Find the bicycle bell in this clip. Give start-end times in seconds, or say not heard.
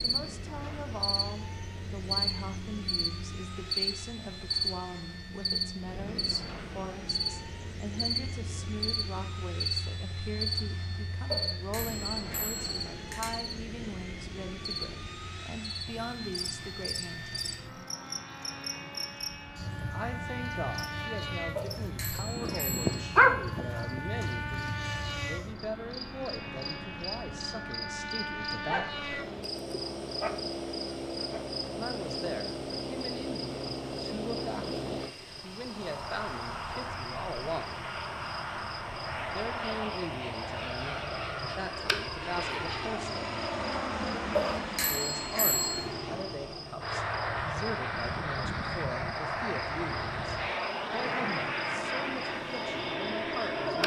11.3-13.3, 21.6-23.1, 44.3-45.8.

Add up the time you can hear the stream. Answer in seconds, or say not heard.
not heard.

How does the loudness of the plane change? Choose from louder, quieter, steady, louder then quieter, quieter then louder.
louder.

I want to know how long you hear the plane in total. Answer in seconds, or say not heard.
54 s.